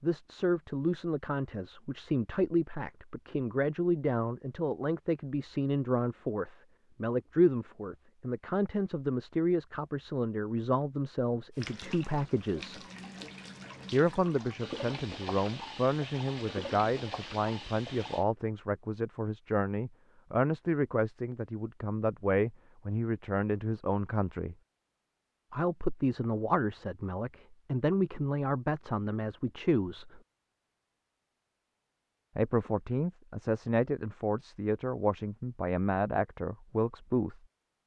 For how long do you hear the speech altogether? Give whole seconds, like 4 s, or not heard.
33 s.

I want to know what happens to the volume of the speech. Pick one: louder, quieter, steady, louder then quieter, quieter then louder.
steady.